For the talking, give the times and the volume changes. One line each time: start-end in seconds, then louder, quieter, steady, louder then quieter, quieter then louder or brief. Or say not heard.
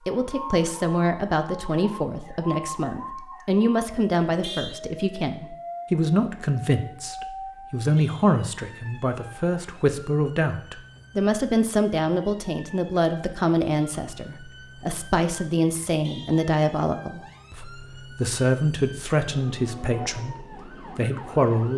0.1-21.7 steady.